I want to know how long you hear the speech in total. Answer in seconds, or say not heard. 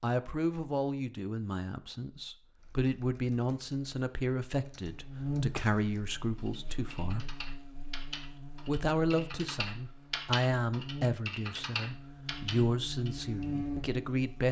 13 s.